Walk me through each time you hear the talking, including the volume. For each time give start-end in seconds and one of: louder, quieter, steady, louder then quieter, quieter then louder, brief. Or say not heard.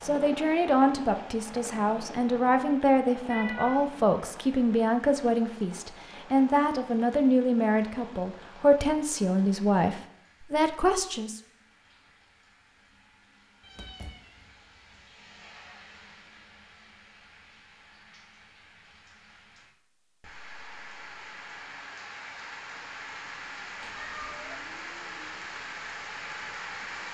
0.0-11.4 steady.